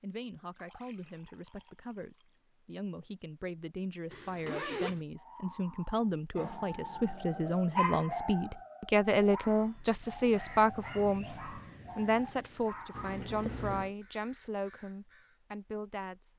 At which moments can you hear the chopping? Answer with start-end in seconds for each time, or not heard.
not heard.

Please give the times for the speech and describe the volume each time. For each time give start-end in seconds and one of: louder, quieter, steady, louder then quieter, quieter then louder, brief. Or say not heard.
0.0-16.3 louder then quieter.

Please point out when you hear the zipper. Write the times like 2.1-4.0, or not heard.
4.1-5.0.